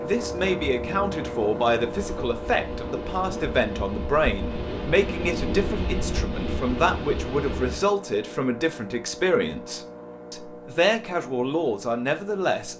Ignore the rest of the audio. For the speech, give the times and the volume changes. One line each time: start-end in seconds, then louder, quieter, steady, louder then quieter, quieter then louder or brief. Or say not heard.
0.0-12.7 steady.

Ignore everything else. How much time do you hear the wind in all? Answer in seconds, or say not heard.
8 s.